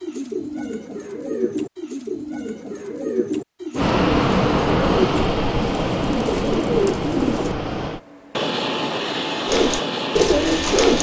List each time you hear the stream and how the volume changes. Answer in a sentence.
The stream can't be heard in this clip.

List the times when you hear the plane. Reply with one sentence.
You can hear the plane from 3.8 to 10.9 s.